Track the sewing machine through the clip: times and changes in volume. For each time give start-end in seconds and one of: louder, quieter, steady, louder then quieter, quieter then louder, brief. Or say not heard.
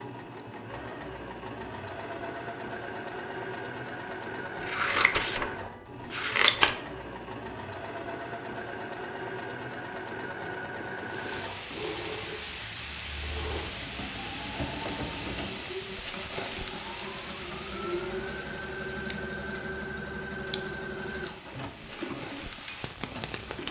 0.0-23.6 steady.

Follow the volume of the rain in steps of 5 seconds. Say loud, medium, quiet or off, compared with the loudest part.
off, off, loud, loud, loud.